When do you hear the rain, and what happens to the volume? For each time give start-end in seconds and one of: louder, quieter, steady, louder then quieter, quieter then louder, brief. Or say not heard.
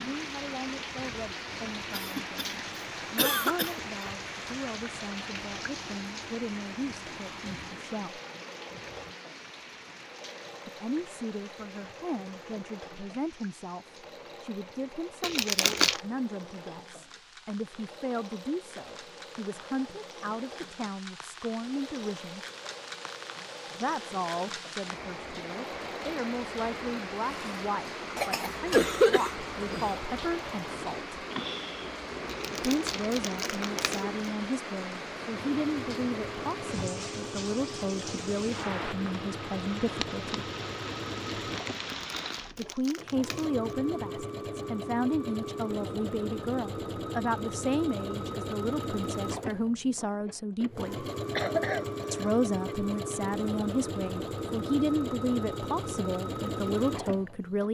0.0-42.7 quieter then louder.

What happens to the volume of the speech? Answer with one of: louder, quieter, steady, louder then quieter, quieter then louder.
louder.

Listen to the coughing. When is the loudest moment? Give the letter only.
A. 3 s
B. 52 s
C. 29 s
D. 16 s
C.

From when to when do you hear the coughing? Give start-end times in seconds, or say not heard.
1.9-2.5, 3.1-3.8, 28.1-30.1, 51.4-52.8.